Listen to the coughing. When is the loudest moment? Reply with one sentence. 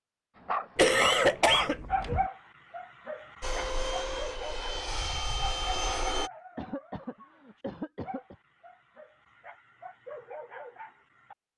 The loudest moment of the coughing is at 1 second.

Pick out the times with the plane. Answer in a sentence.
The plane can be heard from 3.4 to 6.3 s.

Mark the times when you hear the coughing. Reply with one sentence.
The coughing can be heard from 0.8 to 2.2 s and from 6.5 to 8.3 s.